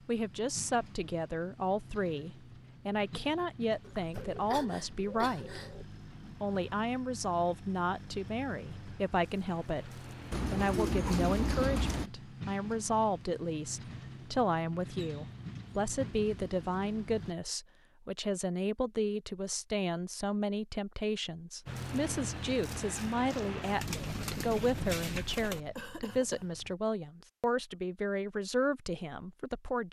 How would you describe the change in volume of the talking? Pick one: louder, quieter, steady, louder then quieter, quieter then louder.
steady.